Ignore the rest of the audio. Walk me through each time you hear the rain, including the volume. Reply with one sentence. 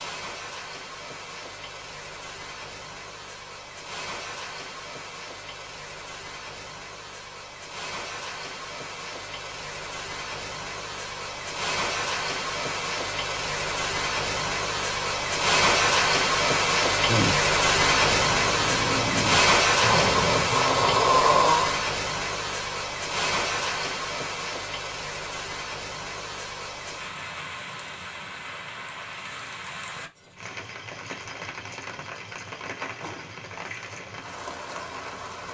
The rain can be heard from 0.0 to 35.4 s, getting louder then quieter.